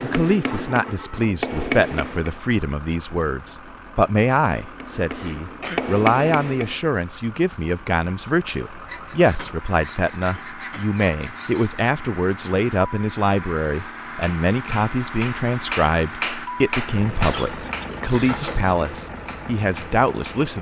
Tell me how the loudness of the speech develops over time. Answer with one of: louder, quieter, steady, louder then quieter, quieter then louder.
steady.